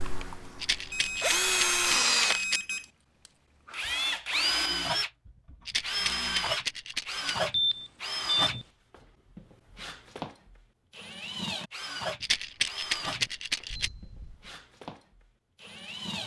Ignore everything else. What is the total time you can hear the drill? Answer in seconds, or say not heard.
15 s.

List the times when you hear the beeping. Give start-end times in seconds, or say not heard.
0.9-2.9, 7.5-8.7, 13.7-14.5.